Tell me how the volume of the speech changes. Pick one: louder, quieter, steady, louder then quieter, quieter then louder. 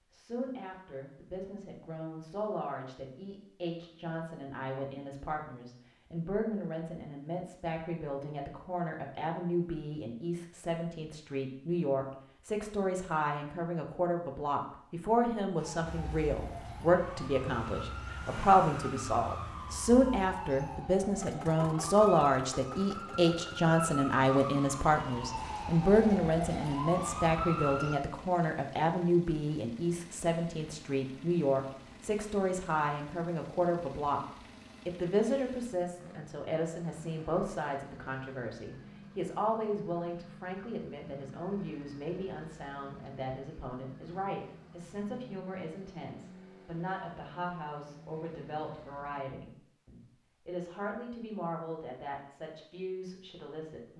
louder then quieter.